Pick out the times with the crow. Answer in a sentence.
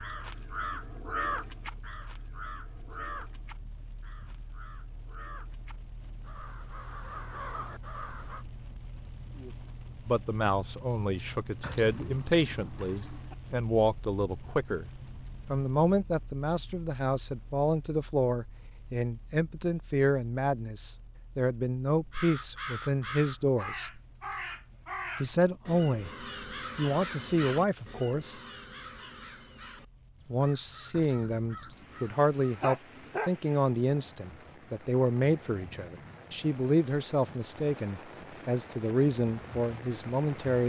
You can hear the crow from 0.0 to 8.4 s and from 22.1 to 32.7 s.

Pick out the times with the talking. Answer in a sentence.
You can hear the talking from 9.4 to 14.8 s, from 15.5 to 24.0 s, from 25.2 to 26.1 s, from 26.8 to 28.4 s and from 30.2 to 40.6 s.